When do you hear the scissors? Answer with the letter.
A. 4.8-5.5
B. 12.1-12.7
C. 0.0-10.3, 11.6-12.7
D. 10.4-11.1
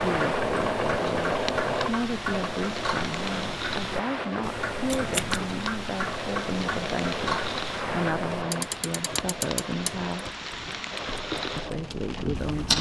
A.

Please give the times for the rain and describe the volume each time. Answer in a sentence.
The rain can be heard from 0.0 to 12.7 s, at a steady volume.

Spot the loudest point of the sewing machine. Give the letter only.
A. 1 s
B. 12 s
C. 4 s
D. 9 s
A.